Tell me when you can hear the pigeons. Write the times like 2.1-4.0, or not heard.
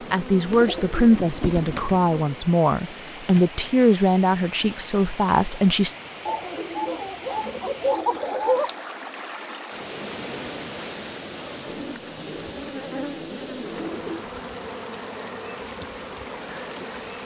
0.5-2.0, 6.2-8.7, 11.7-14.3.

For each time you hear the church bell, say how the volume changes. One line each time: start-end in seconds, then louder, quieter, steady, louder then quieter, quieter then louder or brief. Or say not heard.
not heard.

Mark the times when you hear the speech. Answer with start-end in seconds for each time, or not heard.
0.1-6.0.